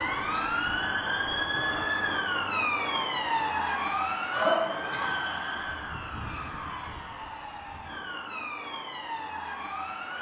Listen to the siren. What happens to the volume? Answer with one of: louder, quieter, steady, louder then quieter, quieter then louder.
quieter.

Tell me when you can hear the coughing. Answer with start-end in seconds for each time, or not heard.
4.3-5.2.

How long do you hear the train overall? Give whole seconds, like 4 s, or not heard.
not heard.